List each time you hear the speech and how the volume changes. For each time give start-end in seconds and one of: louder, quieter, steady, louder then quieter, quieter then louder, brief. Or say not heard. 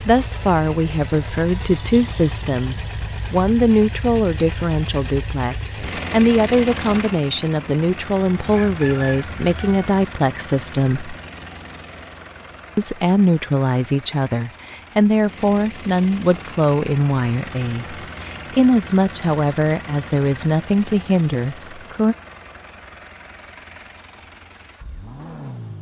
0.0-11.2 steady
12.8-22.1 steady.